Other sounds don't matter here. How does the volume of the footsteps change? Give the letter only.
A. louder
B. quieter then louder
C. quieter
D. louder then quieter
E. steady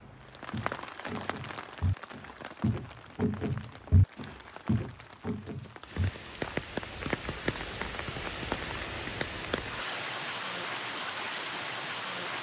D.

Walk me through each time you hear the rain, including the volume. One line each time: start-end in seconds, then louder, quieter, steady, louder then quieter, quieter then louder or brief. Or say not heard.
0.0-12.3 quieter then louder.